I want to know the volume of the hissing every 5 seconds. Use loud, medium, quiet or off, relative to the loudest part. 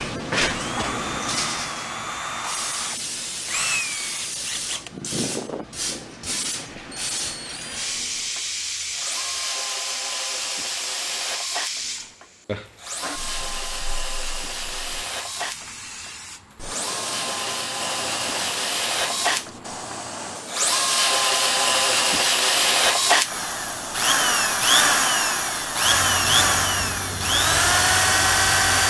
loud, loud, loud, medium, medium, medium.